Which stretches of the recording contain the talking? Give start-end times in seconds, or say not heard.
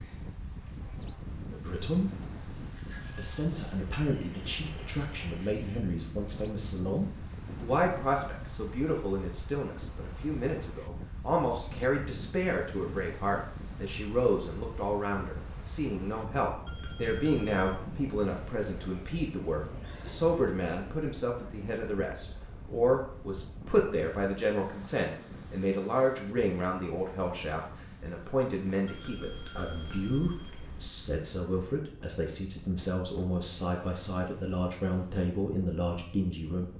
1.5-2.1, 3.1-36.7.